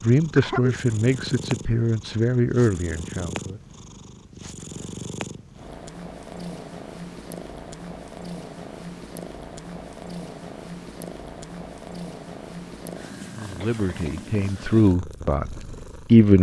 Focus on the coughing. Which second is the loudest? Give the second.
1 s.